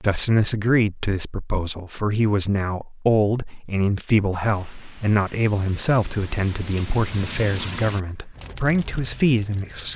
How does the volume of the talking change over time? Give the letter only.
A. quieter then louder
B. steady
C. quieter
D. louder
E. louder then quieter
B.